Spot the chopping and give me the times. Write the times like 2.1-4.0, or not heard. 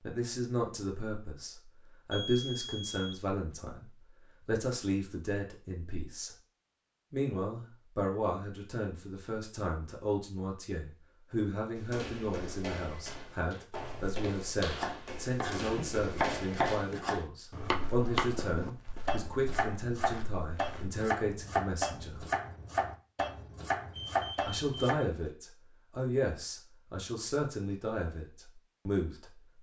14.7-25.1.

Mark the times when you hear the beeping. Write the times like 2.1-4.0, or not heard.
2.1-3.2, 23.9-24.9.